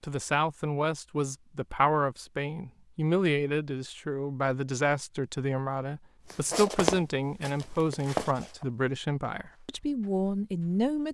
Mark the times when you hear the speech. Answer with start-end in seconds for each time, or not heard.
0.0-11.0.